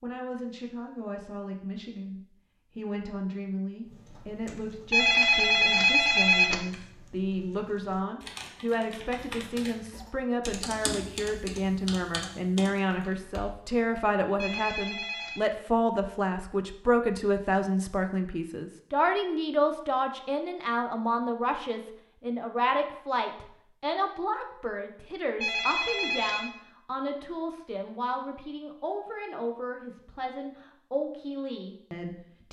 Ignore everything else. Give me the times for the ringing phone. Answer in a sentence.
You can hear the ringing phone from 4.9 to 6.7 s, from 14.3 to 15.4 s and from 25.4 to 26.5 s.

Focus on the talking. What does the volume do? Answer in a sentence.
The loudness of the talking goes up, then down.